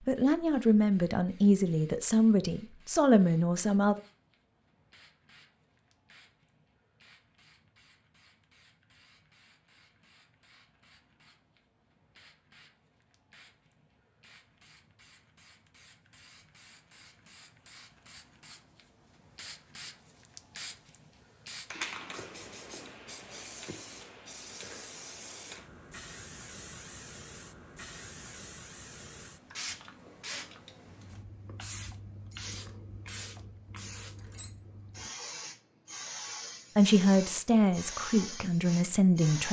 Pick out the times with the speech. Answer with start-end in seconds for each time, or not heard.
0.0-4.0, 36.8-39.4.